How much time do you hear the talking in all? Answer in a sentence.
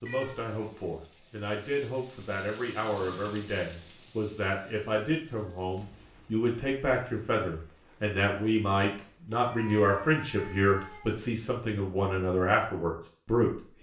The talking can be heard for 14 seconds in total.